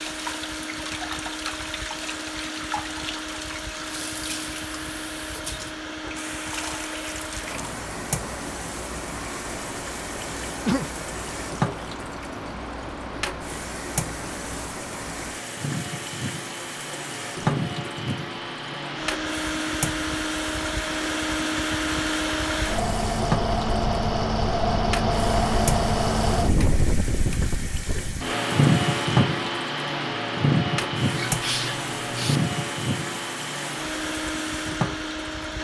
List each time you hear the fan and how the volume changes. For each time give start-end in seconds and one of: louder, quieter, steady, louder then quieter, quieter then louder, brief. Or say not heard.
0.0-35.5 louder.